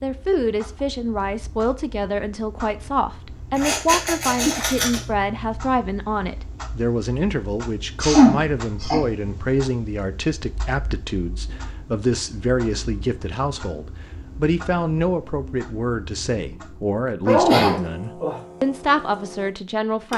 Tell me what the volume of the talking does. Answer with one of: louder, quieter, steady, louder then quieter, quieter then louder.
steady.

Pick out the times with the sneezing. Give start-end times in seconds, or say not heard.
3.6-5.0, 8.0-9.0, 17.2-18.4.